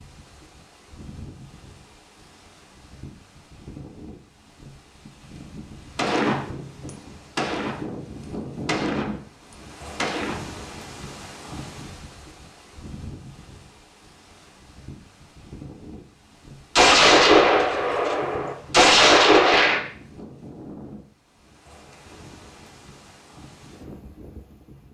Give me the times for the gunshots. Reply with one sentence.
The gunshots can be heard from 6.0 to 7.8 s, from 8.7 to 10.4 s and from 16.8 to 19.8 s.